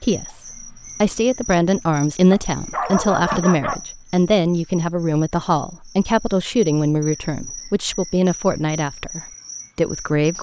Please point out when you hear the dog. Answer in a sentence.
The dog can be heard from 2.3 to 3.8 s.